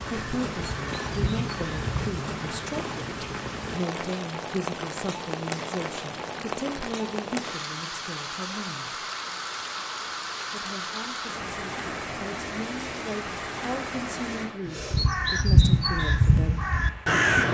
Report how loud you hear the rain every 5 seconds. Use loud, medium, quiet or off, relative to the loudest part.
loud, loud, loud, quiet.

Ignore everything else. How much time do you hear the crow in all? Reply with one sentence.
The crow can be heard for 5 seconds in total.